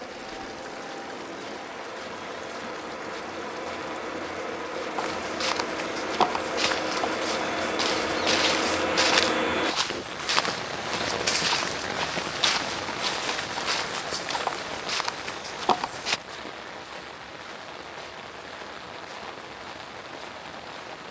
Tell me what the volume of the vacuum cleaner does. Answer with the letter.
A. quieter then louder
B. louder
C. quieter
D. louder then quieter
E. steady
B.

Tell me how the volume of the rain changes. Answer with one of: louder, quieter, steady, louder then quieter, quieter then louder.
louder then quieter.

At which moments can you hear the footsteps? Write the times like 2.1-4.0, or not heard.
5.0-16.2.